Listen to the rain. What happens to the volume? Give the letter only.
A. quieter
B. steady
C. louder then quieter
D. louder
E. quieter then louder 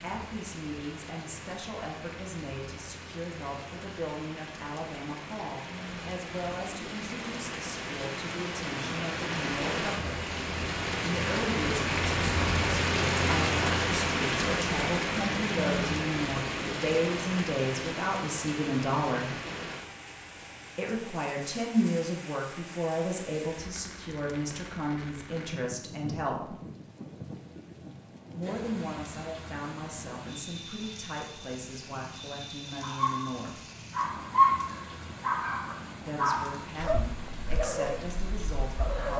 C.